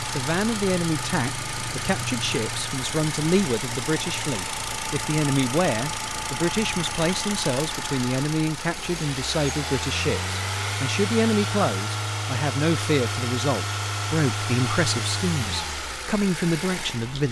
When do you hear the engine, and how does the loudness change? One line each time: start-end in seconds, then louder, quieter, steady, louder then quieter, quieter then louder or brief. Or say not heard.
0.0-17.2 steady.